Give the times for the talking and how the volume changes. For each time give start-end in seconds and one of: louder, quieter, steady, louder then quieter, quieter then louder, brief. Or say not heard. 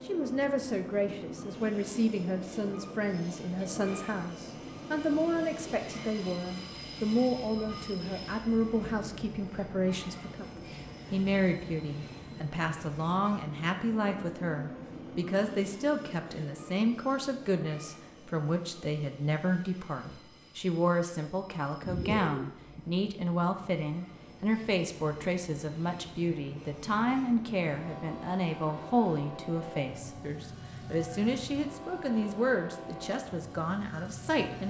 0.1-34.6 steady.